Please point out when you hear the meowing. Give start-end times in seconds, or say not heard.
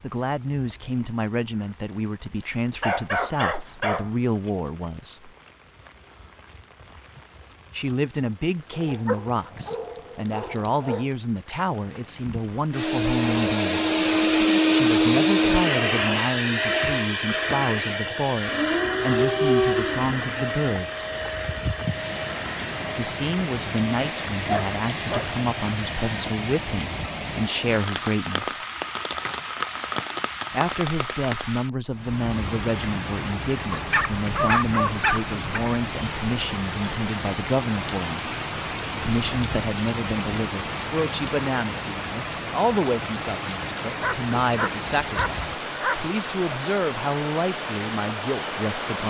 not heard.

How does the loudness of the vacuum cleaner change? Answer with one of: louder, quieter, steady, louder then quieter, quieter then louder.
quieter.